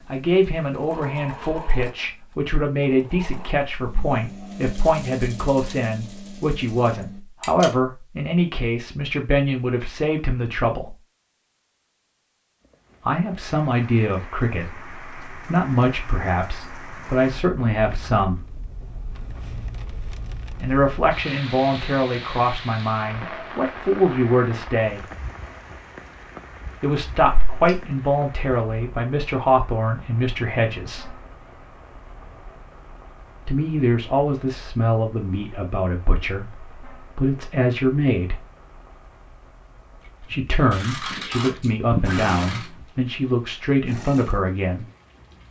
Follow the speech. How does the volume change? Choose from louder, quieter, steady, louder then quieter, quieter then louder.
steady.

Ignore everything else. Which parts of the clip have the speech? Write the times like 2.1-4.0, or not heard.
0.1-10.9, 13.1-18.4, 20.6-25.1, 26.8-31.1, 33.5-38.4, 40.3-44.9.